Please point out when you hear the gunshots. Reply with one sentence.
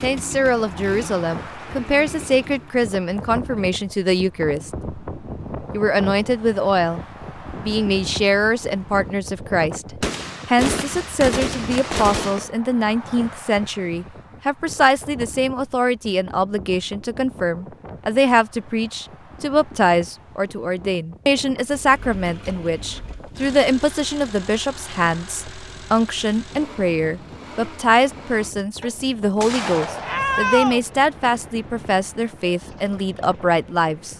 You can hear the gunshots from 10.0 to 12.5 s and from 29.4 to 30.8 s.